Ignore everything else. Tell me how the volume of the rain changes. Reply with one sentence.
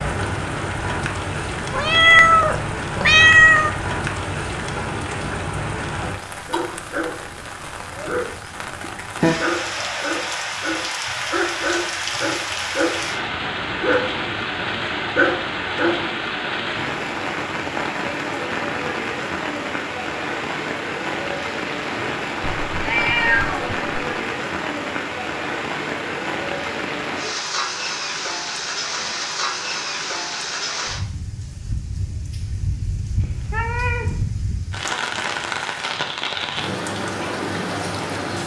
The volume of the rain stays about the same.